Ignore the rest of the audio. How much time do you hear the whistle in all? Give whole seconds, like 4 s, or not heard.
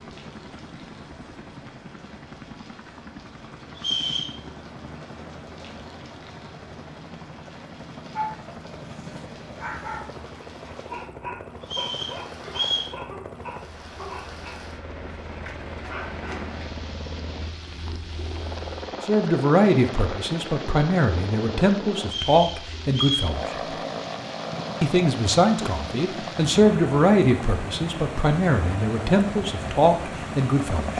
3 s.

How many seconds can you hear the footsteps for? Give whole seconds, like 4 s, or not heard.
not heard.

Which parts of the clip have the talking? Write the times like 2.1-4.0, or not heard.
19.0-23.6, 24.8-30.9.